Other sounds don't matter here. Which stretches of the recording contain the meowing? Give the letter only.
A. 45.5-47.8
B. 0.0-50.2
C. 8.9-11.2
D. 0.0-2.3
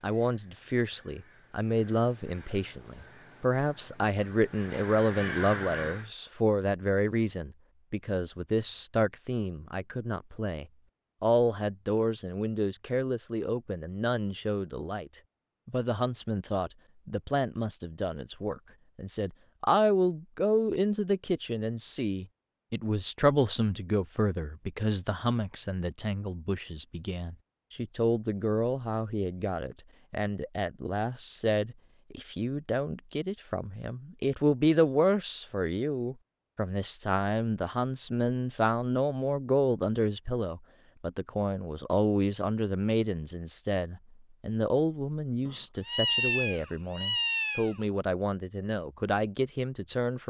A.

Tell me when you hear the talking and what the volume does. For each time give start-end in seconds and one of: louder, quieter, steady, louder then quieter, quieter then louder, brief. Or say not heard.
0.0-50.2 steady.